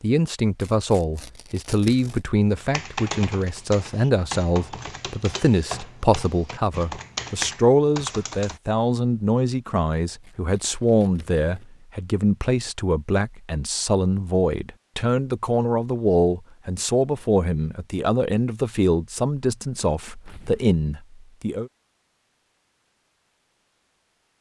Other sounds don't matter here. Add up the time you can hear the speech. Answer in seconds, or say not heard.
22 s.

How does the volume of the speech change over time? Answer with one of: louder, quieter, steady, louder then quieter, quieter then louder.
steady.